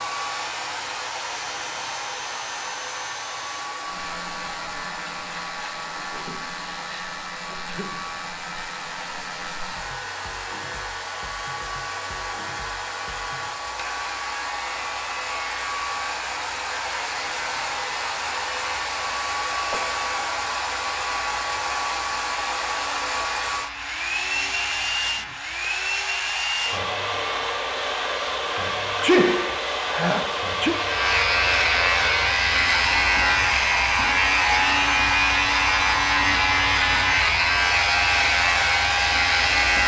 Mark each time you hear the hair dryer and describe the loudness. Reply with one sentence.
The hair dryer can be heard from 0.0 to 39.8 s, getting louder.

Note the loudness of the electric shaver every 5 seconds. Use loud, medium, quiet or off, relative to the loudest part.
quiet, quiet, quiet, quiet, quiet, quiet, loud, loud.